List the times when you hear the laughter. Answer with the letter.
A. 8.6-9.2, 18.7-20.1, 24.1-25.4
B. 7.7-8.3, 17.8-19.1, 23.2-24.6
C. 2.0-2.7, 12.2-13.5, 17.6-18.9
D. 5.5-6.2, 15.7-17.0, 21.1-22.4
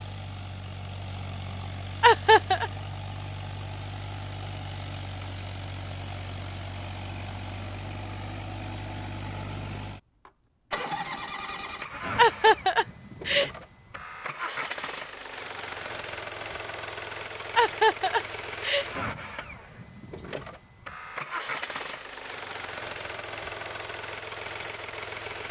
C.